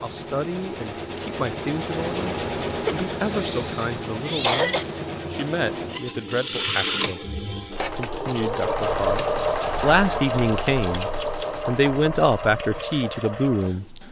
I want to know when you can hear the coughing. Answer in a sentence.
The coughing can be heard from 2.9 to 4.8 s.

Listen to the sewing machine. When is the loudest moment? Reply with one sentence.
The volume of the sewing machine peaks at 9 seconds.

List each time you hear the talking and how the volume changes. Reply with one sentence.
The talking can be heard from 0.0 to 14.0 s, getting louder.